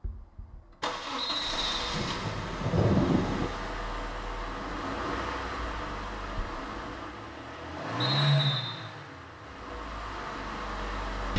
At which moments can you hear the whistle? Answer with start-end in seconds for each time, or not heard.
1.1-1.9, 8.0-8.8.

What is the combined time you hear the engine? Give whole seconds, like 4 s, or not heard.
11 s.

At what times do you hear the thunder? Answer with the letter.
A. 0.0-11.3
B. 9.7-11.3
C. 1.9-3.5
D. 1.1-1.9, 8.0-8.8
C.